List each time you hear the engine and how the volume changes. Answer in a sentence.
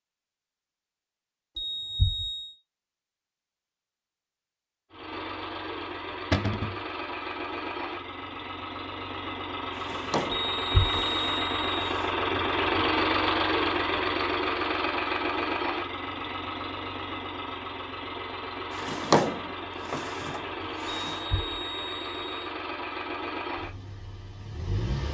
The engine can be heard from 4.9 to 25.0 s, getting louder then quieter.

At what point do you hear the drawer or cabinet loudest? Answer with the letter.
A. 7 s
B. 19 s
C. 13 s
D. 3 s
B.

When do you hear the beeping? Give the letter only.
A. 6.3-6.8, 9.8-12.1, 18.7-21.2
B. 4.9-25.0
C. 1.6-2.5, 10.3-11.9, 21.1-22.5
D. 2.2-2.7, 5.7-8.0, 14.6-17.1
C.